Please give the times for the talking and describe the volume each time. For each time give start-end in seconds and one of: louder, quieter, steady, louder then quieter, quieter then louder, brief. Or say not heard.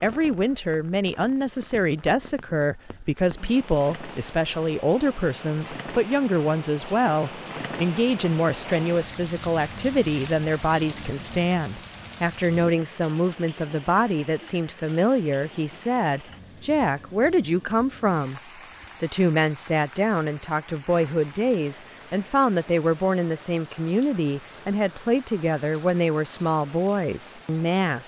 0.0-28.0 steady.